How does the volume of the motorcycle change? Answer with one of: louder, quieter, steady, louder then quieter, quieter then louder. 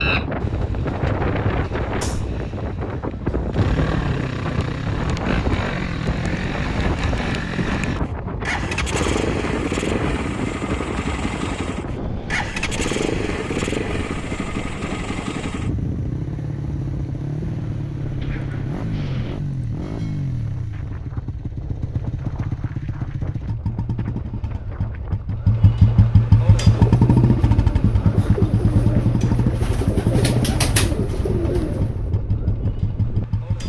louder.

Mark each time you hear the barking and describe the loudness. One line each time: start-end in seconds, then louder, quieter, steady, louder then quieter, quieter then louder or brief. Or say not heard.
not heard.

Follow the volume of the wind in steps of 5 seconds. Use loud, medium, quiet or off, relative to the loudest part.
loud, loud, loud, medium, quiet, medium, medium.